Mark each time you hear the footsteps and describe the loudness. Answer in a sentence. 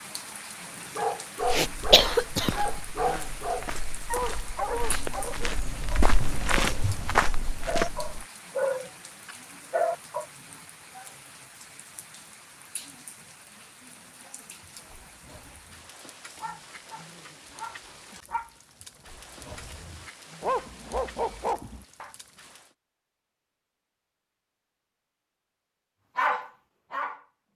The footsteps can be heard from 1.6 to 8.2 s, getting louder.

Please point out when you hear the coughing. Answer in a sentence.
The coughing can be heard from 1.5 to 2.5 s.